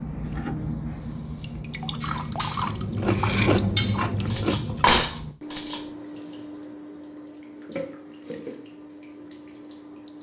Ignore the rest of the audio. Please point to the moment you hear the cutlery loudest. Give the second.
5 s.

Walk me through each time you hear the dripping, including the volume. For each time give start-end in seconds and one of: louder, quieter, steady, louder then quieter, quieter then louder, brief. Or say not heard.
0.0-10.1 quieter.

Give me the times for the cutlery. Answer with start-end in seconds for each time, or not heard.
2.0-5.8.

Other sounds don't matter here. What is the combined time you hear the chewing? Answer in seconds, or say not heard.
3 s.